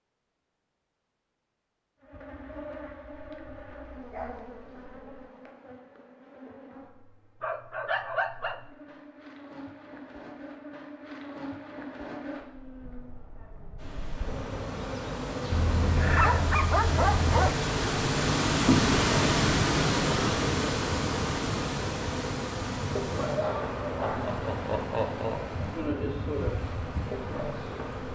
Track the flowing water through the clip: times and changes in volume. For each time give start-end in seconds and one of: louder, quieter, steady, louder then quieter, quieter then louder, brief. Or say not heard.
13.8-28.0 louder then quieter.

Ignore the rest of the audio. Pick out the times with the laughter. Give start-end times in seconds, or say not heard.
24.1-25.6.